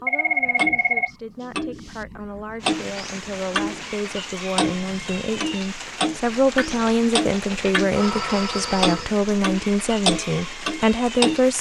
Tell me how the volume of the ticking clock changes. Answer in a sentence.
The volume of the ticking clock goes up.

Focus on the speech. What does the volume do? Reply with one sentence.
The loudness of the speech goes up.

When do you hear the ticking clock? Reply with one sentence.
You can hear the ticking clock from 0.0 to 3.9 s and from 4.5 to 11.4 s.